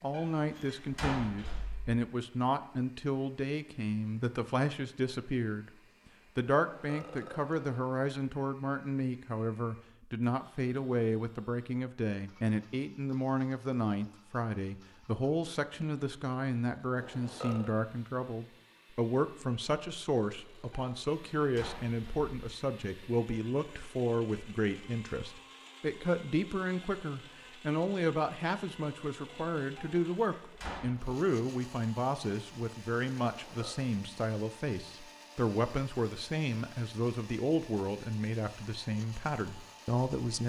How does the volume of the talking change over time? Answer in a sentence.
The loudness of the talking stays about the same.